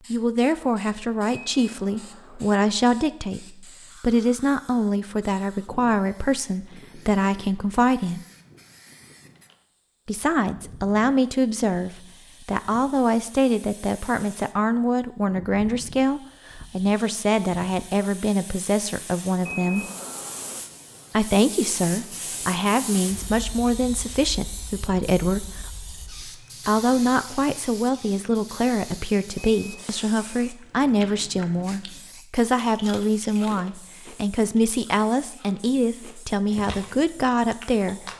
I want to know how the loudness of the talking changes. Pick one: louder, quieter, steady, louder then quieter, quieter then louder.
steady.